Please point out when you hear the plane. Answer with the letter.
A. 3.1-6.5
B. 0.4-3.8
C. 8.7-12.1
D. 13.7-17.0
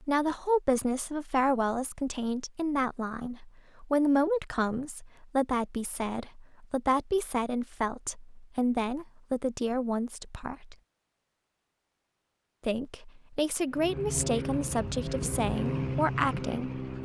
D.